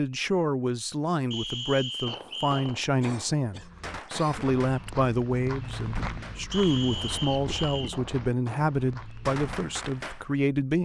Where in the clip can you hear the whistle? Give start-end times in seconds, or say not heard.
1.3-2.8, 6.5-8.0.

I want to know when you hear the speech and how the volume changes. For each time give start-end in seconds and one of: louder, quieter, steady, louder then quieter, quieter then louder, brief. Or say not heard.
0.0-10.8 steady.